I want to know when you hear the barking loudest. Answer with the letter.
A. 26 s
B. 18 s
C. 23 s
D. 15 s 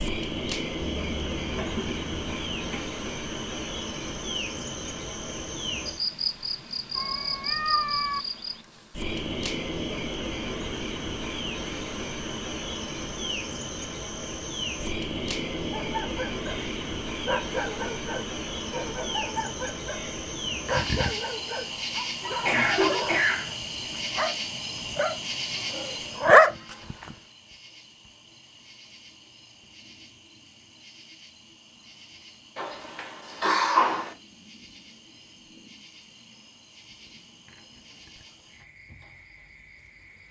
A.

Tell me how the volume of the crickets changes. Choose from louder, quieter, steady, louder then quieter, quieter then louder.
quieter.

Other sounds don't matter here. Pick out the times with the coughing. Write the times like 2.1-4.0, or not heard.
0.9-2.8, 22.2-23.6, 32.5-34.1.